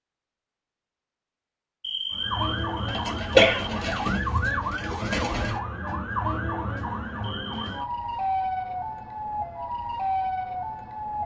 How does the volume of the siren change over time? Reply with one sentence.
The volume of the siren stays about the same.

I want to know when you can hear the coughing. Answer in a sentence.
The coughing can be heard from 1.9 to 3.7 s and from 7.2 to 7.7 s.